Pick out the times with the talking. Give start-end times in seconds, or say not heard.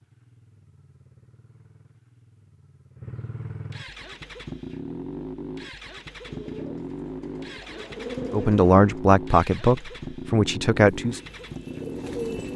8.3-11.2.